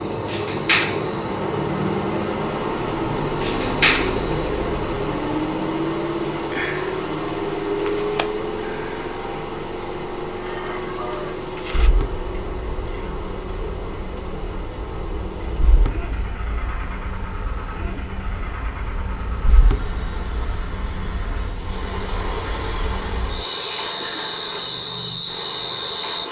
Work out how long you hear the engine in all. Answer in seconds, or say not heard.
26 s.